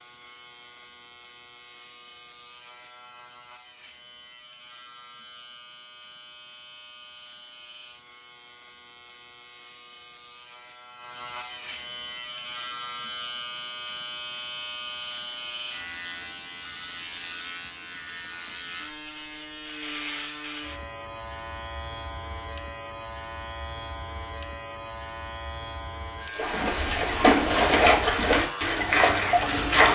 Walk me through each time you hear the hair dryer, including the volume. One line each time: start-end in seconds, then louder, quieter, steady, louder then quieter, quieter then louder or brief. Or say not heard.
not heard.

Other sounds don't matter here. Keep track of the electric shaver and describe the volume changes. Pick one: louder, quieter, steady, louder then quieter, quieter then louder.
louder.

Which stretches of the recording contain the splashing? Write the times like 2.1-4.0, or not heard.
26.4-29.9.